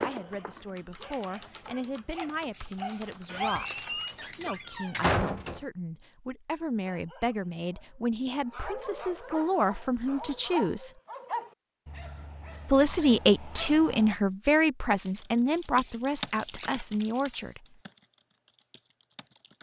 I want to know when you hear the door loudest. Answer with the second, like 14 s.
5 s.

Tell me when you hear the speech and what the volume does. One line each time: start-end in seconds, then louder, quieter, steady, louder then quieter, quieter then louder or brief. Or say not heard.
0.0-10.9 louder
12.7-17.6 quieter.